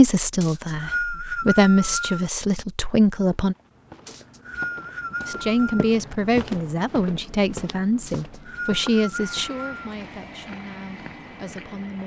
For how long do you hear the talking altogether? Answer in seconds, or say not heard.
10 s.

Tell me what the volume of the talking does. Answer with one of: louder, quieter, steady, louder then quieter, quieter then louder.
quieter.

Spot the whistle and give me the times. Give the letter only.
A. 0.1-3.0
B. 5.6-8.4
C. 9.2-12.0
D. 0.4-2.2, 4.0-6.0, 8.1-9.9
D.